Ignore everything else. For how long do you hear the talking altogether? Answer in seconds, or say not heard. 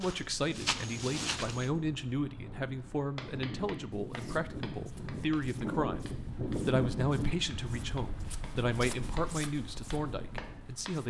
11 s.